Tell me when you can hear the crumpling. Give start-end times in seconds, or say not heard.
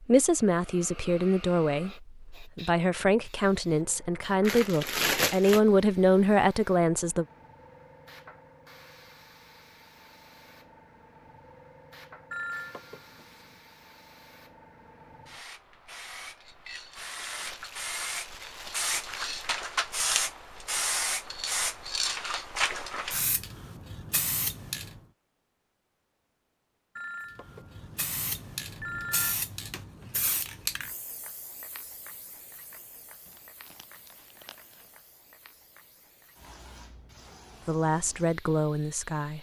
4.4-5.6, 17.1-19.4, 33.2-34.9.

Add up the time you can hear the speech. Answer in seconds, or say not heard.
9 s.